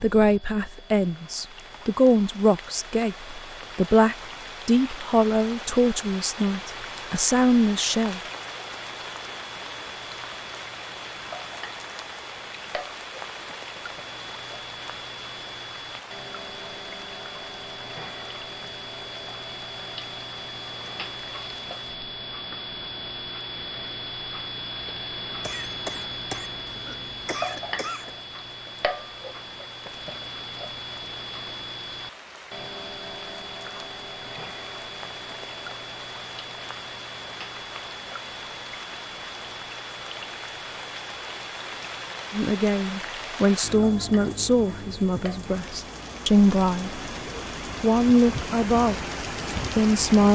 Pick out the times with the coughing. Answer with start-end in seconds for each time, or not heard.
25.4-28.1.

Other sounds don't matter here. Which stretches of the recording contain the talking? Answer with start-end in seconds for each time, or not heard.
0.0-8.2, 42.3-47.0, 47.8-49.0, 49.8-50.3.